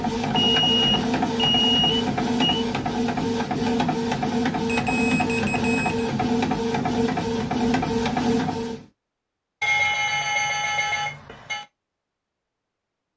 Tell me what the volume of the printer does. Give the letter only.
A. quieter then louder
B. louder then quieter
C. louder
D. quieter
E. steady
E.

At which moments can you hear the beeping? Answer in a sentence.
You can hear the beeping from 0.3 to 2.6 s, from 4.7 to 6.1 s and from 9.6 to 11.7 s.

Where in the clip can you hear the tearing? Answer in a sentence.
The tearing can't be heard in this clip.